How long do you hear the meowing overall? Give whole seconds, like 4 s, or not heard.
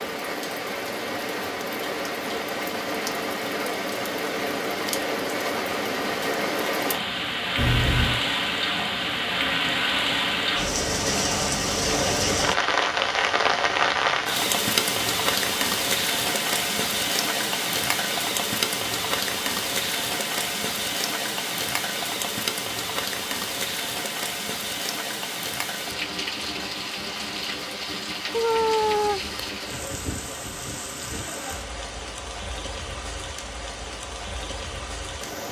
2 s.